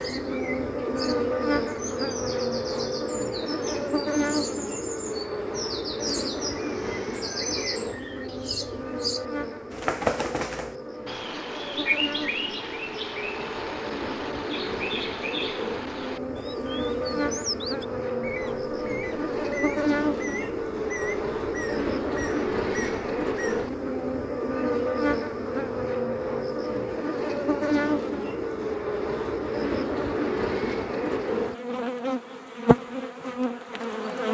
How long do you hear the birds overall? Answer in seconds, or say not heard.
24 s.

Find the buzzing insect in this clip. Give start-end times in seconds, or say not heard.
0.0-34.3.